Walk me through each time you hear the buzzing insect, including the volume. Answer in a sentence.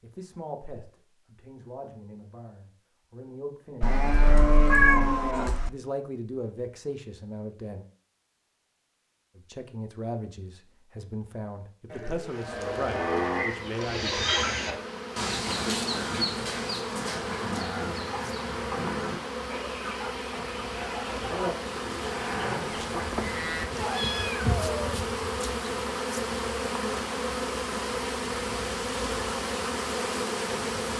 The buzzing insect can be heard from 12.2 to 30.9 s, getting louder.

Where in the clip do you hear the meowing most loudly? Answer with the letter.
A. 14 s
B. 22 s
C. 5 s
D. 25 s
C.